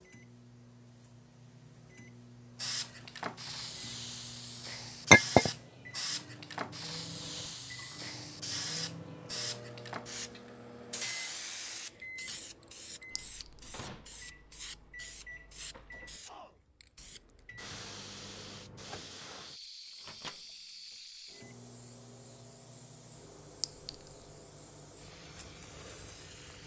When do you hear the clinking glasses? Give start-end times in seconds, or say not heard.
5.1-5.5, 13.2-13.7, 23.6-24.2.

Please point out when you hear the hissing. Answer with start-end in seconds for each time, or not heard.
2.5-26.6.